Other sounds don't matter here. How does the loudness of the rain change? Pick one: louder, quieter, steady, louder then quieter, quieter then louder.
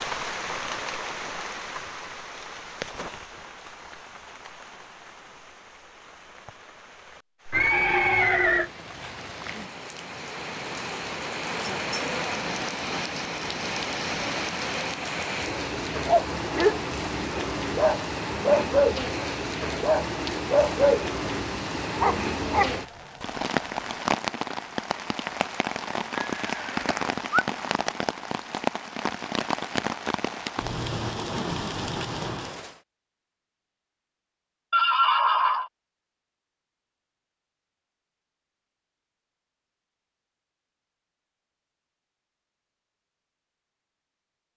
louder.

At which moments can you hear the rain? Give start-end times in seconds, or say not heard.
0.0-32.8.